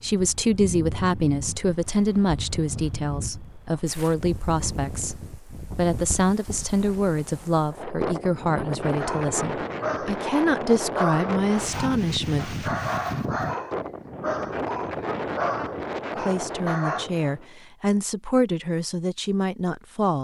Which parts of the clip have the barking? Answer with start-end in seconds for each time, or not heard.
8.9-17.1.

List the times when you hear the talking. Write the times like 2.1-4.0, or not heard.
0.0-12.7, 16.1-20.1.